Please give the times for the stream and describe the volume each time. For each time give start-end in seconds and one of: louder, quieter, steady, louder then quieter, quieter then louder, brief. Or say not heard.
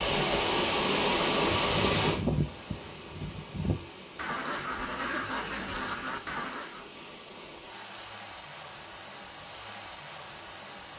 0.0-10.9 quieter.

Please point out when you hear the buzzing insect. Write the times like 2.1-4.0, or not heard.
not heard.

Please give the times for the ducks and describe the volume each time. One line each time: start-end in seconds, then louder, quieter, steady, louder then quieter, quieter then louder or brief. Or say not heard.
1.4-6.8 quieter then louder.